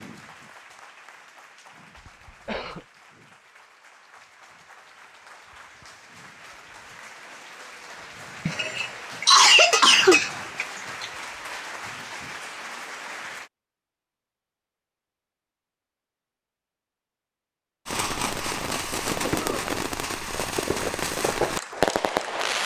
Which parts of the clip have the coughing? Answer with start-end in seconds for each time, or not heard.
1.9-2.9, 8.4-11.1, 19.1-19.6.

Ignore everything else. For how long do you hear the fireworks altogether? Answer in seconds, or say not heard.
5 s.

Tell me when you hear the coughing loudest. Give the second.
9 s.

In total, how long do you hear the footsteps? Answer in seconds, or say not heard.
not heard.